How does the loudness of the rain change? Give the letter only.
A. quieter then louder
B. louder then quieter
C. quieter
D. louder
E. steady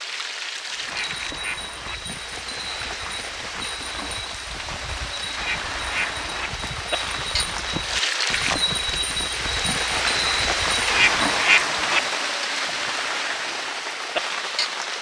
D.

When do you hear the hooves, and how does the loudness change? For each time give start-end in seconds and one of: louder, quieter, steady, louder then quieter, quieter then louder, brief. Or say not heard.
0.7-11.4 louder.